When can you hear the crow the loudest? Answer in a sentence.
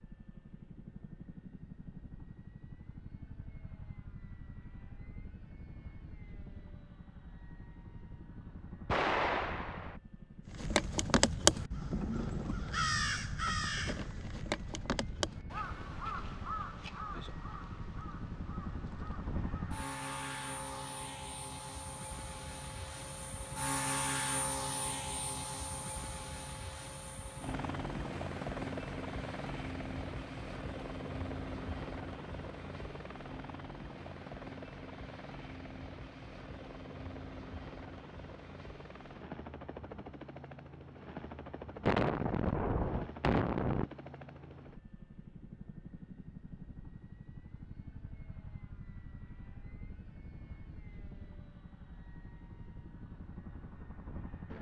The loudest moment of the crow is at 11 seconds.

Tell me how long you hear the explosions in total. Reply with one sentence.
The explosions can be heard for 3 seconds in total.